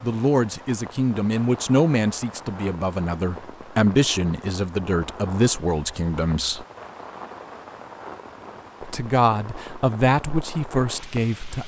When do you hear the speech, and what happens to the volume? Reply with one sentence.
You can hear the speech from 0.0 to 6.7 s, at a steady volume; and briefly from 8.8 to 11.6 s.